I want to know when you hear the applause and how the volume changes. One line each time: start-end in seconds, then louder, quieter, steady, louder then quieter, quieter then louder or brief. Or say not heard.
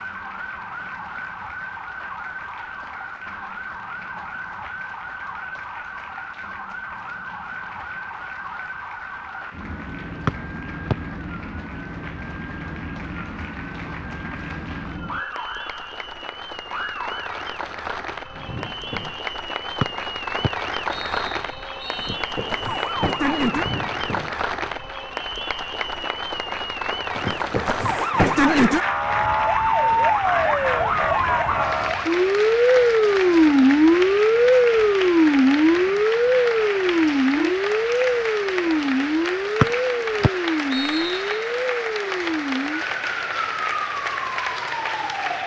0.0-45.4 louder.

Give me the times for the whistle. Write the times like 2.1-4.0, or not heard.
10.2-10.9, 19.8-22.2, 39.6-41.4.